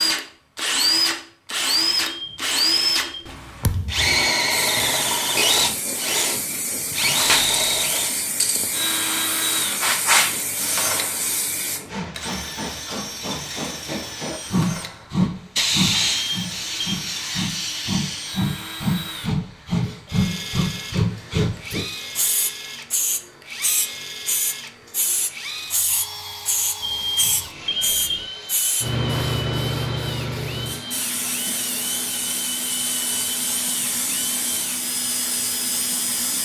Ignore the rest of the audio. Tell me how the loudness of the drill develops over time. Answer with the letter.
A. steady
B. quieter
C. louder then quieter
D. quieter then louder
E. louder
B.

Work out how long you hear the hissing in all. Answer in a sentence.
The hissing can be heard for 32 seconds in total.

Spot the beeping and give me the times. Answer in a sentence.
The beeping can be heard from 1.9 to 3.3 s, from 16.1 to 17.0 s and from 26.8 to 28.2 s.